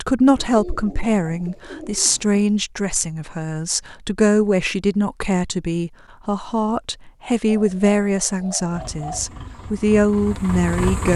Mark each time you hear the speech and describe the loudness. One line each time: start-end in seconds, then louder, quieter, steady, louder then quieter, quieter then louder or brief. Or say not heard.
0.0-11.1 steady.